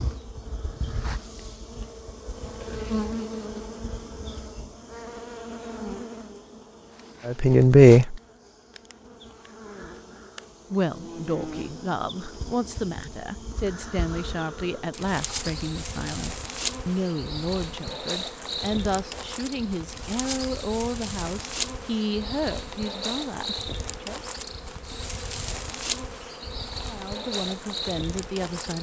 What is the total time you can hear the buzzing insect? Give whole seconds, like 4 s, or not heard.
29 s.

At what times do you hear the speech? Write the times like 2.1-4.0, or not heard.
7.2-8.2, 10.7-24.2, 26.8-28.7.